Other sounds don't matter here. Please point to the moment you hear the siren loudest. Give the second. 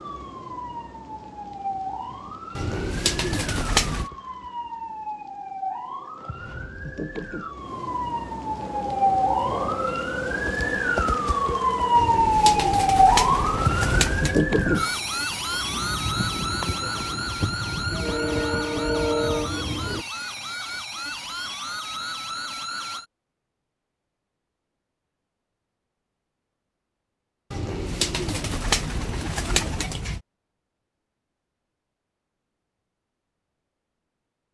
13 s.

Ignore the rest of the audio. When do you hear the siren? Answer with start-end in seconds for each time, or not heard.
0.0-23.1.